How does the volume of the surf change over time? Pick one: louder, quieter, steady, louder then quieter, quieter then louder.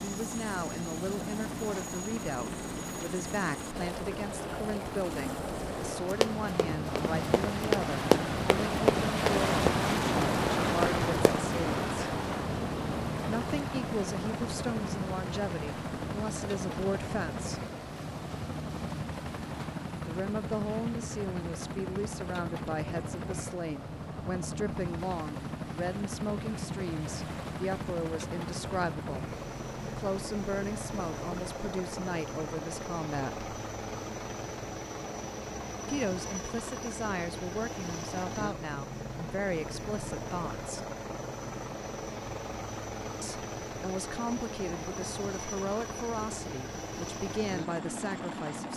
louder then quieter.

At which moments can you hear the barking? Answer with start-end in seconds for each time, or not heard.
not heard.